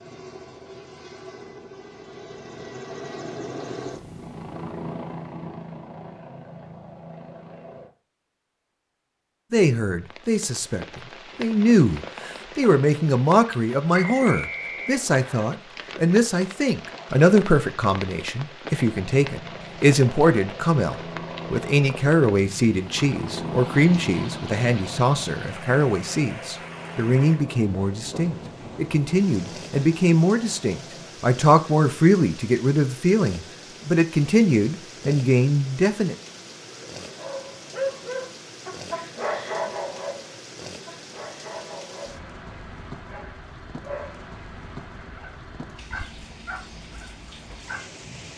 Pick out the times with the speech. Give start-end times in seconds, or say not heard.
9.5-36.1.